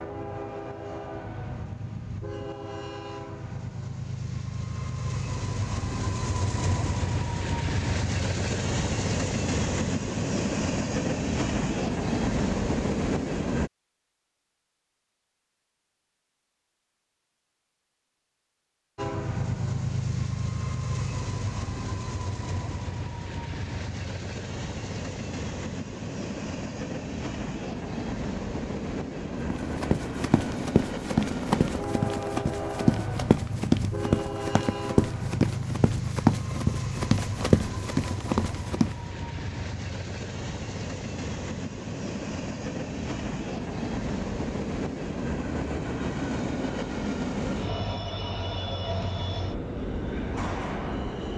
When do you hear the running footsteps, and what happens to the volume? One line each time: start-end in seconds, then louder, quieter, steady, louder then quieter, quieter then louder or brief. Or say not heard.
29.5-39.0 steady.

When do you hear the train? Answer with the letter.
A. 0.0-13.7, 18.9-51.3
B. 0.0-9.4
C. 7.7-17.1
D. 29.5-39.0
A.